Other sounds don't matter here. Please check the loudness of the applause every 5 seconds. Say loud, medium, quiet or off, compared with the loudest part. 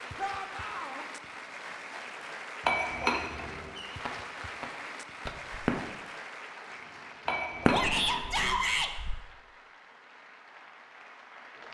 loud, loud, medium.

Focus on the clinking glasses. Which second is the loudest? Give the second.
3 s.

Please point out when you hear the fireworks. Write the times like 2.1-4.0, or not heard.
3.8-5.8, 7.7-9.2.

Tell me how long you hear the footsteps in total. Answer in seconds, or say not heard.
not heard.